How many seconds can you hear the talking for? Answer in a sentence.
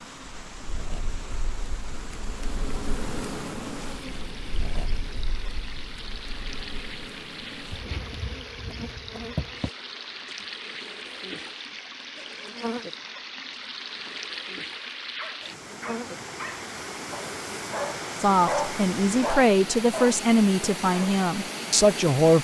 You can hear the talking for 4 seconds altogether.